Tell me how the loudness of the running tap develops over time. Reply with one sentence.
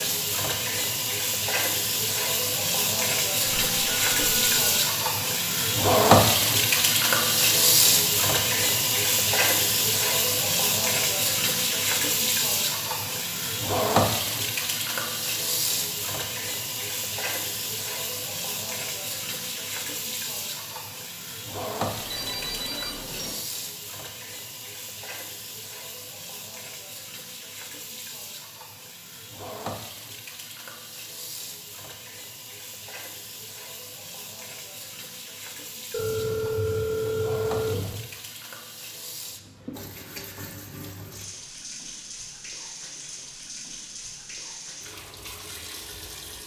The volume of the running tap goes down.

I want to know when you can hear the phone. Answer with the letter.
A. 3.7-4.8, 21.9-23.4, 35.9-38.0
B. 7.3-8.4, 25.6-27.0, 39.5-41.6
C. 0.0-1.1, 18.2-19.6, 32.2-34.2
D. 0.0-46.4
A.